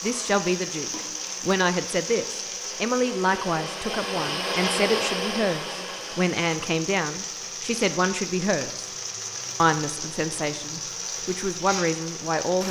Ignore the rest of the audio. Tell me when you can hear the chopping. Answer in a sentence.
You can't hear the chopping here.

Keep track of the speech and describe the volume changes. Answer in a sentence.
The loudness of the speech stays about the same.